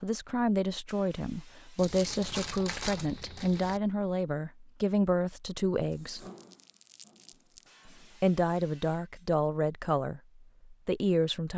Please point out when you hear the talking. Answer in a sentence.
The talking can be heard from 0.0 to 6.2 s and from 7.8 to 11.5 s.